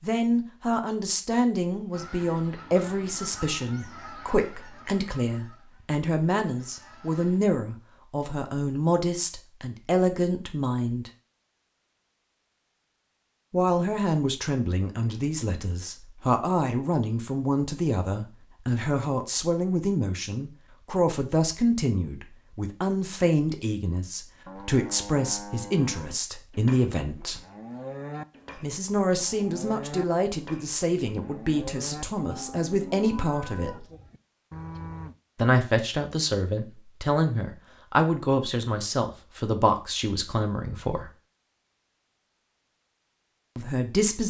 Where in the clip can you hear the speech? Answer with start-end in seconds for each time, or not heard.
0.0-11.1, 13.5-27.4, 28.6-33.9, 35.4-41.1, 43.5-44.2.